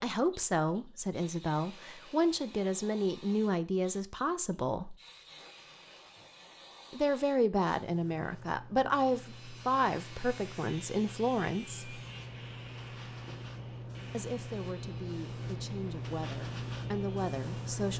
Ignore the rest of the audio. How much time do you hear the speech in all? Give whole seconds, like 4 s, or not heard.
14 s.